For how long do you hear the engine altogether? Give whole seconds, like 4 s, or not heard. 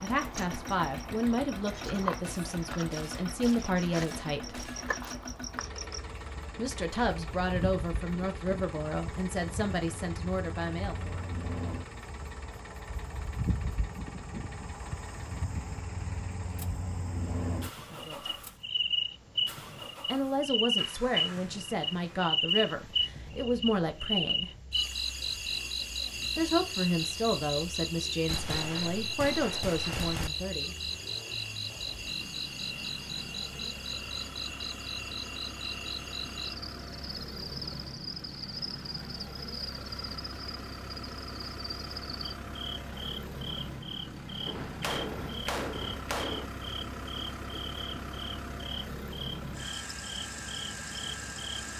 52 s.